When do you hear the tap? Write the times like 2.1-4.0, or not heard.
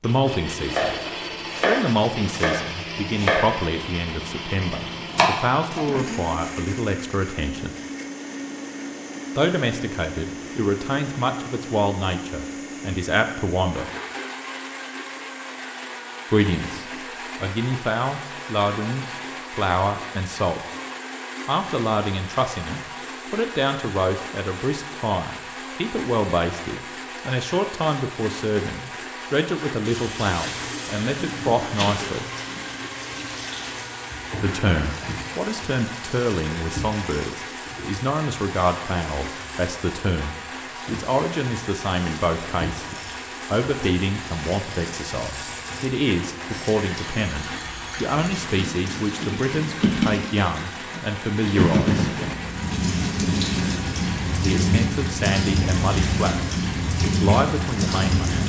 29.8-58.4.